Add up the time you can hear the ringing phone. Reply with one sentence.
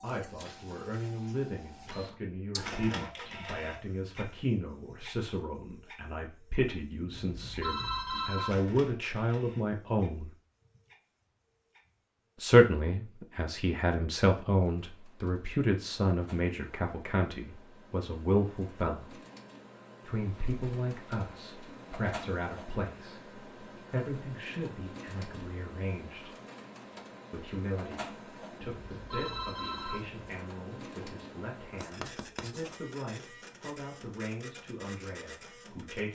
The ringing phone can be heard for 3 seconds in total.